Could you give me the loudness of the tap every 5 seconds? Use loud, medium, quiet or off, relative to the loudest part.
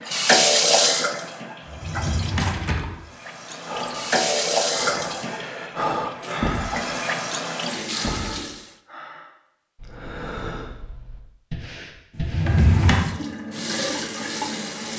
loud, medium, medium.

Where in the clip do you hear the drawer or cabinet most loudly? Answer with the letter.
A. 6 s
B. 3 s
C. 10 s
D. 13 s
D.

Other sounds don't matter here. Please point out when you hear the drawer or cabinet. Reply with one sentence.
You can hear the drawer or cabinet from 1.6 to 3.0 s and from 12.2 to 13.0 s.